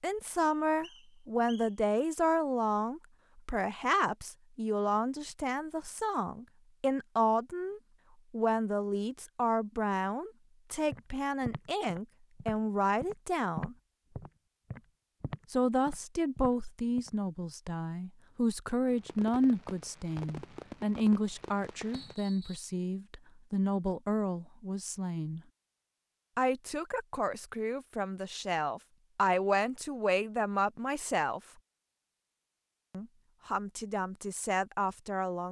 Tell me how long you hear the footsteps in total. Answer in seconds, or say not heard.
6 s.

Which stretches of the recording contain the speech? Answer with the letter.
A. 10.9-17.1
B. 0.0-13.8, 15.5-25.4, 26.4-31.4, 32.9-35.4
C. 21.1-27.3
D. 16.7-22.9
B.